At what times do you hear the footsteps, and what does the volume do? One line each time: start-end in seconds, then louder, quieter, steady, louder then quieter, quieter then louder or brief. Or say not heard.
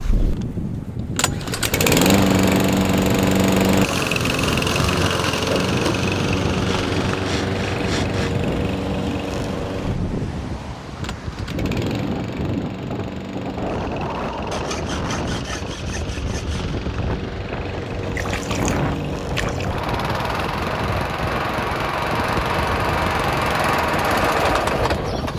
not heard.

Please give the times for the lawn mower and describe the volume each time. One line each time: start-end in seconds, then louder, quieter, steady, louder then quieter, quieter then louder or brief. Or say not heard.
0.0-25.3 quieter then louder.